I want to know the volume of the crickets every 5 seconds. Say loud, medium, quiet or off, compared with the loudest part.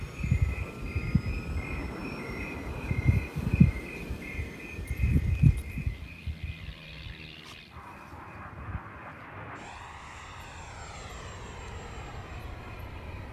loud, loud, quiet.